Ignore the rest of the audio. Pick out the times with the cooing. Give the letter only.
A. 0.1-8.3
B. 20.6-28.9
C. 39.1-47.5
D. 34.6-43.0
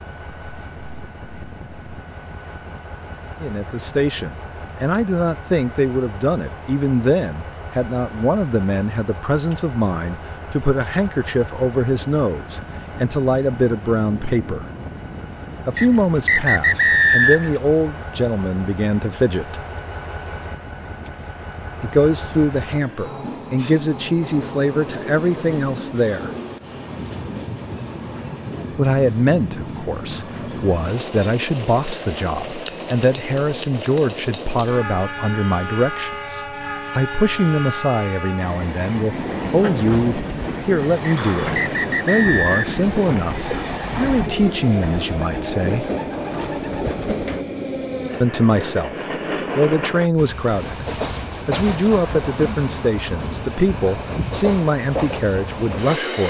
C.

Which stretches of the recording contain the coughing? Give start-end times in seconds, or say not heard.
not heard.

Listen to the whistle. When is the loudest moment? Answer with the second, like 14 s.
17 s.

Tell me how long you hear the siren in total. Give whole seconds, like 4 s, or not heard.
not heard.